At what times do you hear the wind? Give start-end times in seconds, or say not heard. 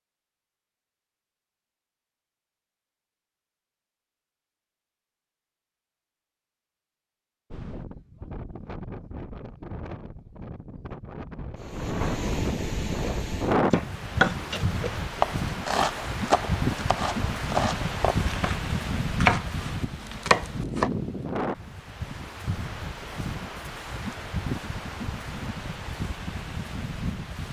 7.5-27.4.